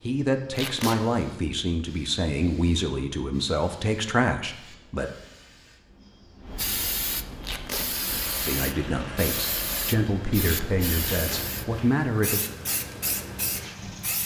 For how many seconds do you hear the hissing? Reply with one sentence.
You can hear the hissing for 14 seconds altogether.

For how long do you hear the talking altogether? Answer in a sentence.
You can hear the talking for 9 seconds altogether.